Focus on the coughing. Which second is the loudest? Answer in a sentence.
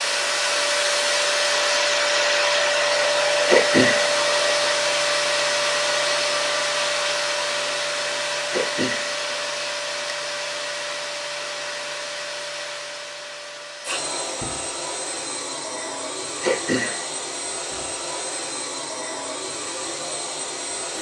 The volume of the coughing peaks at 4 seconds.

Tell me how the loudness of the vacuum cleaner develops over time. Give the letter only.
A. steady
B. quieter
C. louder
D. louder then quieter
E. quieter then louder
B.